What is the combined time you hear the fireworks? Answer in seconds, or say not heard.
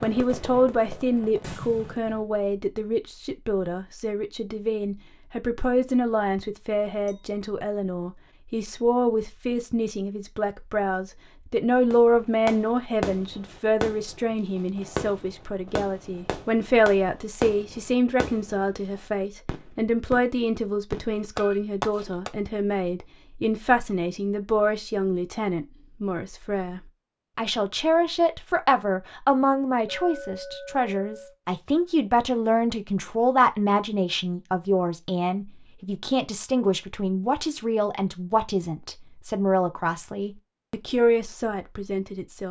13 s.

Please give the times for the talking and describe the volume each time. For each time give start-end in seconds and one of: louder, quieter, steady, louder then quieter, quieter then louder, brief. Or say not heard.
0.0-42.4 steady.